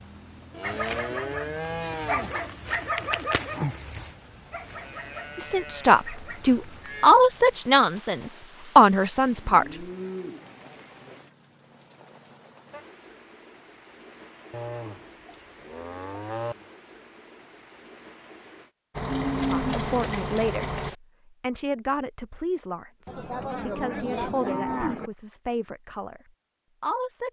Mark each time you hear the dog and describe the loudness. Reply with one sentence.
The dog can be heard from 0.6 to 6.9 s, getting louder then quieter.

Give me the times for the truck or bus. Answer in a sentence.
You can hear the truck or bus from 18.9 to 20.9 s.